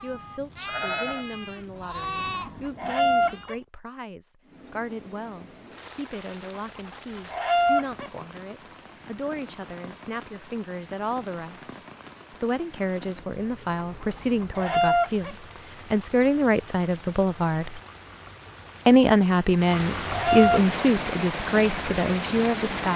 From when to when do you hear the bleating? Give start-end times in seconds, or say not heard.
0.0-3.5.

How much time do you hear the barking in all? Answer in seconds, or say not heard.
not heard.